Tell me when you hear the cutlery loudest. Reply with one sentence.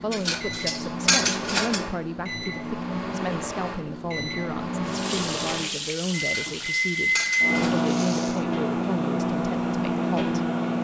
The volume of the cutlery peaks at 1 second.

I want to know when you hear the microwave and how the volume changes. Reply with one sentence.
You can hear the microwave from 0.0 to 10.7 s, getting louder.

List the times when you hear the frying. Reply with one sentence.
You can hear the frying from 4.8 to 8.4 s.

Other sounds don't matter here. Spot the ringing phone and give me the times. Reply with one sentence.
You can't hear the ringing phone here.